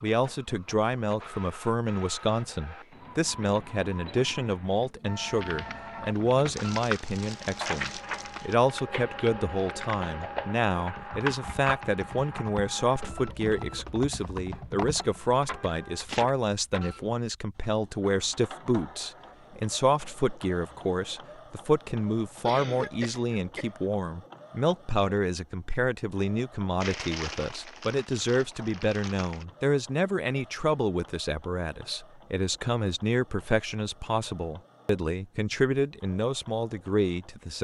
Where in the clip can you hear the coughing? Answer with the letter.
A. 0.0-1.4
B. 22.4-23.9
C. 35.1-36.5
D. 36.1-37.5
B.